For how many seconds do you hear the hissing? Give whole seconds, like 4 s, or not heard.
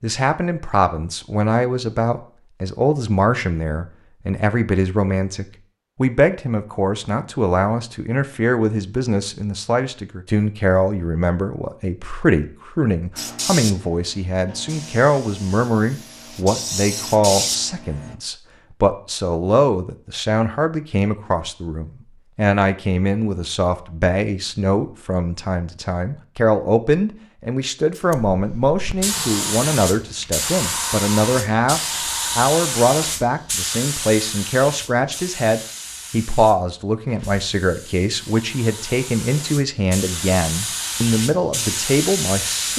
20 s.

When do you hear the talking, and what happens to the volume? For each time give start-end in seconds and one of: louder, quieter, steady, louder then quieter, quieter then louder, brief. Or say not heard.
0.0-42.7 steady.